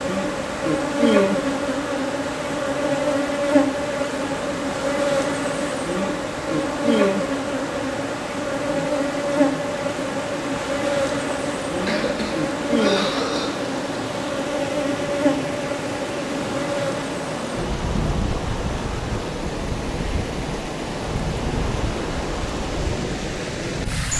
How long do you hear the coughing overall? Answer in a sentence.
You can hear the coughing for 2 seconds altogether.